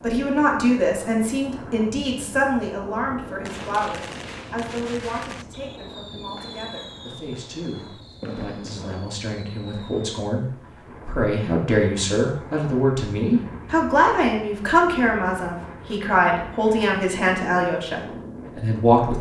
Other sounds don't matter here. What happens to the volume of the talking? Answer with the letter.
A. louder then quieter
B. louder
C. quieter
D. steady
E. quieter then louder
E.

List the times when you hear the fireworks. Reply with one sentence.
You can hear the fireworks from 3.5 to 10.1 s.